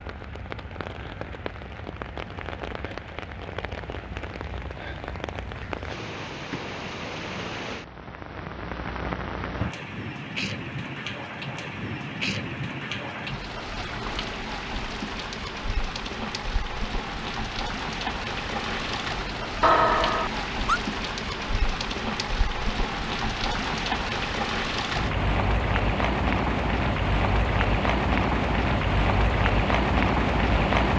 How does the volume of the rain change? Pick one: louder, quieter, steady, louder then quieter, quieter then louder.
louder.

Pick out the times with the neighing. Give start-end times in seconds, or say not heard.
19.6-20.8.